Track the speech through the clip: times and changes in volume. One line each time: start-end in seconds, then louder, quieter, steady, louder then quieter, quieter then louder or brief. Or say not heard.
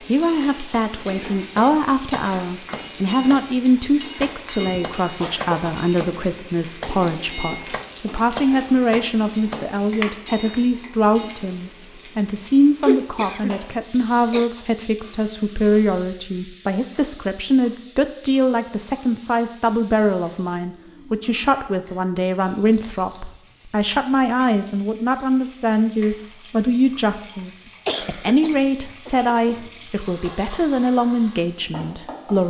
0.1-32.4 steady.